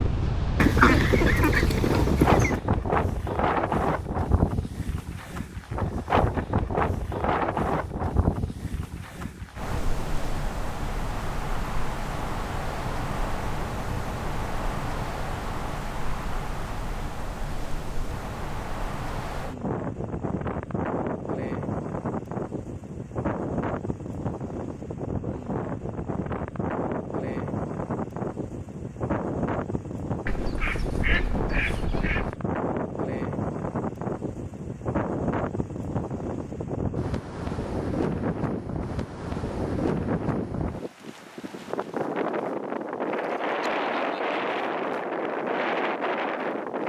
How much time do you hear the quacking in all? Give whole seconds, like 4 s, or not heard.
4 s.